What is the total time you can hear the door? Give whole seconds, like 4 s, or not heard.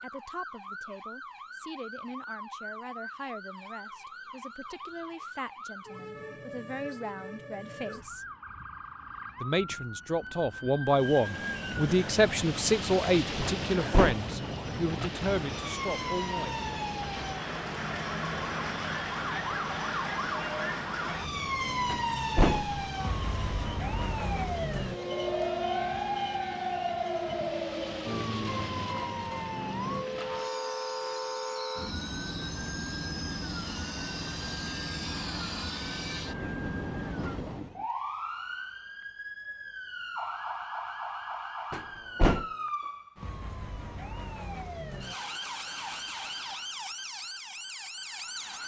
2 s.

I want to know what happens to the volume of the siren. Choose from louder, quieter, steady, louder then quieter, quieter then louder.
louder then quieter.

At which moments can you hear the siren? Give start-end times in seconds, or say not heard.
0.0-48.6.